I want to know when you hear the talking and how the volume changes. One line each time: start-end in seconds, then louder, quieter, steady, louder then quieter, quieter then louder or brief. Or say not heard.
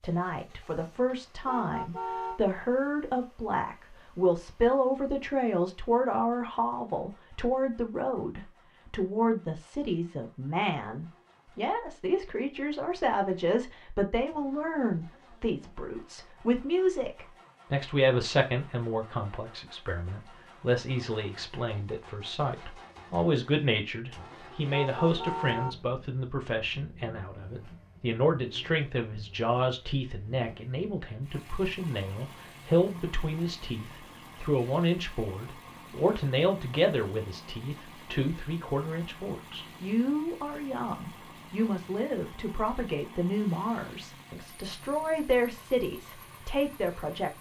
0.0-47.3 steady.